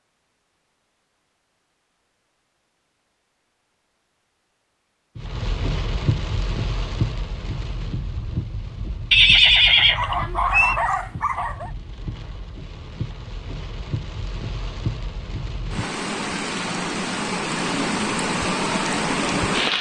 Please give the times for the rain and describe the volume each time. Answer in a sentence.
The rain can be heard from 5.2 to 19.7 s, getting quieter then louder.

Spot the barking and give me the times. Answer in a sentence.
The barking can be heard from 9.9 to 11.7 s.